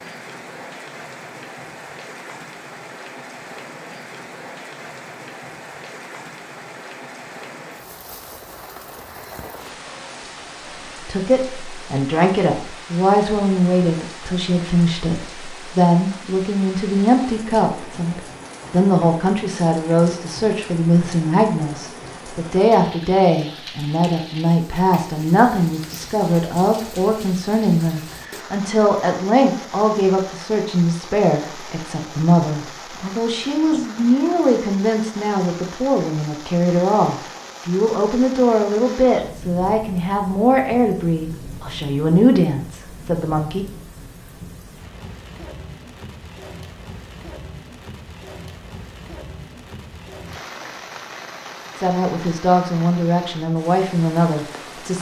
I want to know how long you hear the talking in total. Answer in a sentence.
You can hear the talking for 36 seconds altogether.